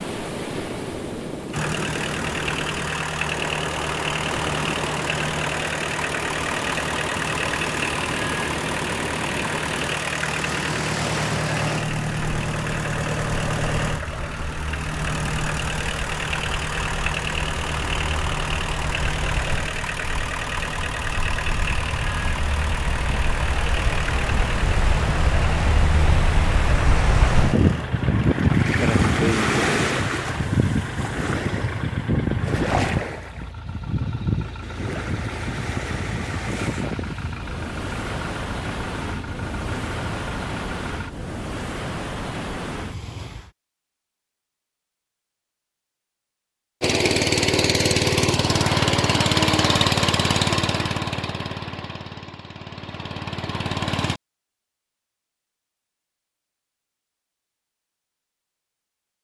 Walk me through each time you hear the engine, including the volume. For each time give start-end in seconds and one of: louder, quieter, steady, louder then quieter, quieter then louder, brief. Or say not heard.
1.5-41.1 quieter
46.8-54.2 quieter.